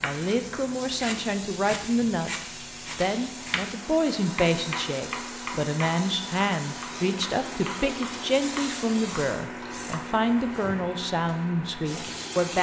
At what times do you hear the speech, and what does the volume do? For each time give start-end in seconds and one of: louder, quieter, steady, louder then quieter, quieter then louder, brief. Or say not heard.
0.0-12.5 steady.